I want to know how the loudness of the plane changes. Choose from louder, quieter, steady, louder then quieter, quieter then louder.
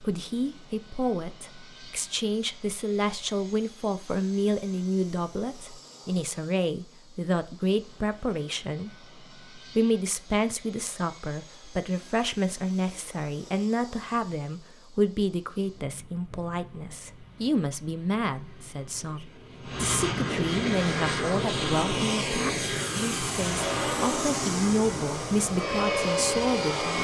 louder.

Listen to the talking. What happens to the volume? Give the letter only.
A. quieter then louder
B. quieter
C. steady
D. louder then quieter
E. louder
C.